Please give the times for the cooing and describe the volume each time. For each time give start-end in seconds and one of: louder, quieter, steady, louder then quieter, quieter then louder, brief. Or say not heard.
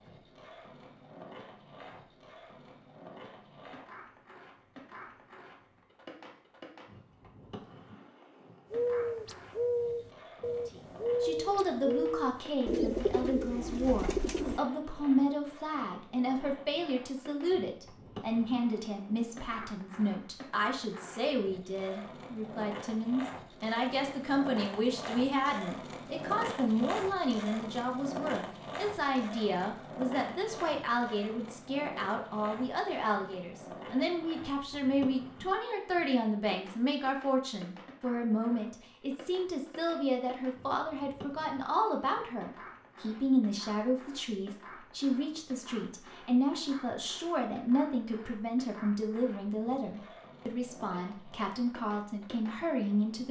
8.7-14.6 steady.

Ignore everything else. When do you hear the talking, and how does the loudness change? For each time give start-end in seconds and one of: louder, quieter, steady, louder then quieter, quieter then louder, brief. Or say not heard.
10.7-53.2 steady.